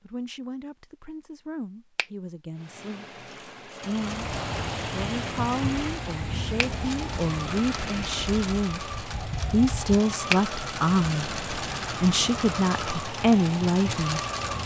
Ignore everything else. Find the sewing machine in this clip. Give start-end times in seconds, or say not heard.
2.5-14.6.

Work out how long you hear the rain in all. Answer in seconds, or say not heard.
11 s.